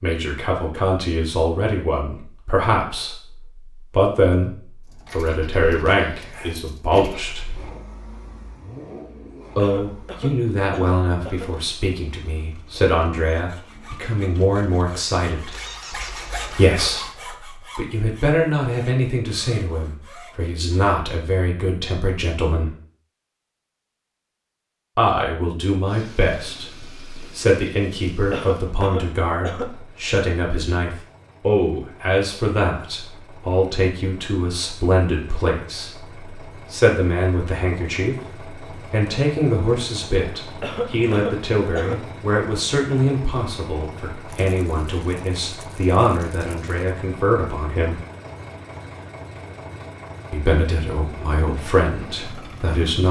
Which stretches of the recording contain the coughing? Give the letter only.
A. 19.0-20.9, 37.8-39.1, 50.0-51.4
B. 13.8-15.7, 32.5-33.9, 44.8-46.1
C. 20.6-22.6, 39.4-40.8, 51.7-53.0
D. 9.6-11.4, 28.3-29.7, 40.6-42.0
D.